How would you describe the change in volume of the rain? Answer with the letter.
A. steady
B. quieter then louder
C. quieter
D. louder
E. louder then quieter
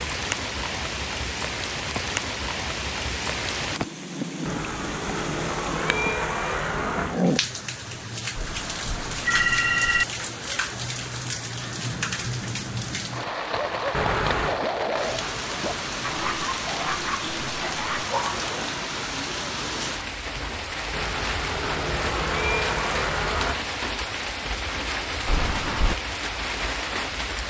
A.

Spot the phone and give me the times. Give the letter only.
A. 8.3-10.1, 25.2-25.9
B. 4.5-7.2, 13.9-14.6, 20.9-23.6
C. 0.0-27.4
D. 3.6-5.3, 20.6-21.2
A.